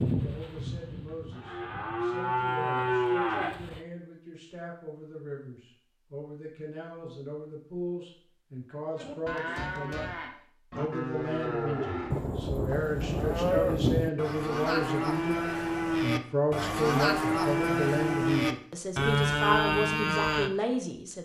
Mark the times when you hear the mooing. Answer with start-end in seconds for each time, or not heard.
0.0-3.8, 8.9-20.5.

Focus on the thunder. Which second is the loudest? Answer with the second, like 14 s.
14 s.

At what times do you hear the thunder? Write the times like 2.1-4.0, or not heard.
12.1-14.1.